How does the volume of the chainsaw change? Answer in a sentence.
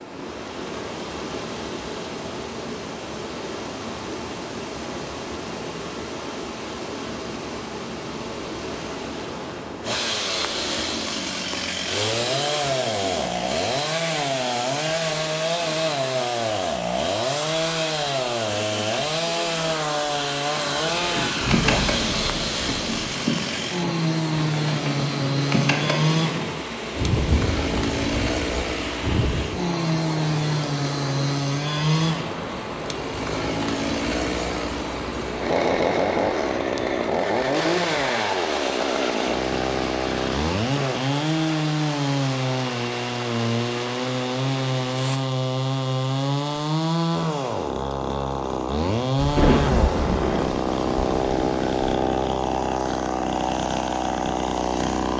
The loudness of the chainsaw stays about the same.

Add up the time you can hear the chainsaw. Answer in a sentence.
The chainsaw can be heard for 45 seconds in total.